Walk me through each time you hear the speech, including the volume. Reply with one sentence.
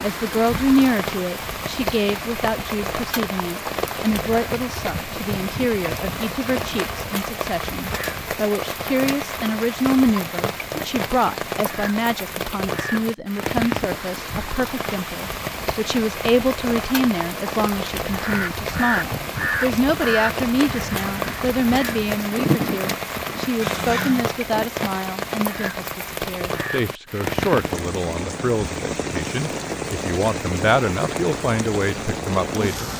The speech can be heard from 0.0 to 32.9 s, at a steady volume.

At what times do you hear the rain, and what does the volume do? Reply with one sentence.
The rain can be heard from 0.0 to 32.9 s, at a steady volume.